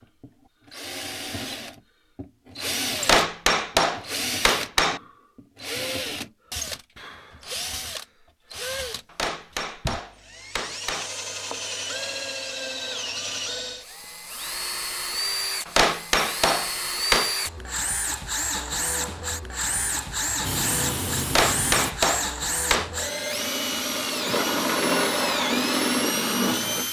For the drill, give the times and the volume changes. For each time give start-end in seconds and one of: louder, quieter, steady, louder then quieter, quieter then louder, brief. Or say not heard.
0.2-26.8 louder.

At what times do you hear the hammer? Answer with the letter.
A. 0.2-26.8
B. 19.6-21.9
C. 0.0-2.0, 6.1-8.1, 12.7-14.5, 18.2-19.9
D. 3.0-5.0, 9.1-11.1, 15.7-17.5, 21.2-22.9
D.